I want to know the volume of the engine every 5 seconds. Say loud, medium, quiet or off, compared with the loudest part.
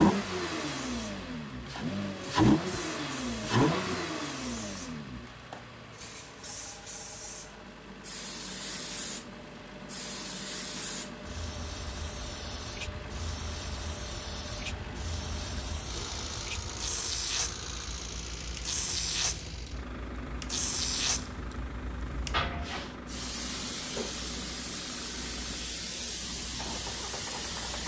loud, quiet, quiet, quiet, quiet, quiet.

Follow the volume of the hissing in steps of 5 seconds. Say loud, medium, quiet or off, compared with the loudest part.
medium, medium, medium, loud, loud, loud.